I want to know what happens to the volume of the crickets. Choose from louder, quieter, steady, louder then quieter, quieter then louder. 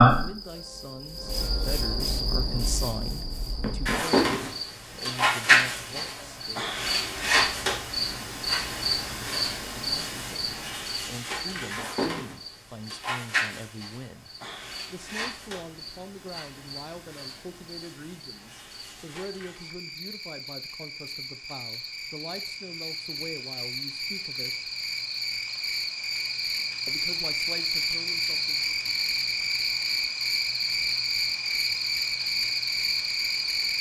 quieter then louder.